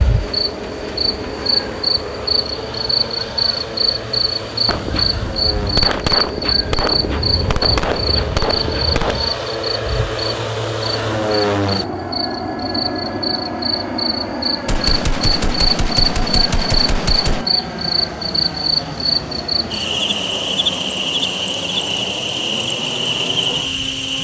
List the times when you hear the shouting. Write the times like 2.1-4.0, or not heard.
not heard.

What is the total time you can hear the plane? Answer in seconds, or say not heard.
24 s.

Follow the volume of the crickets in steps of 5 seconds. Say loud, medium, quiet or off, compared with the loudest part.
loud, loud, medium, loud, loud.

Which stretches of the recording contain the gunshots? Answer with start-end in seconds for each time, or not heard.
4.7-9.3, 14.7-17.4.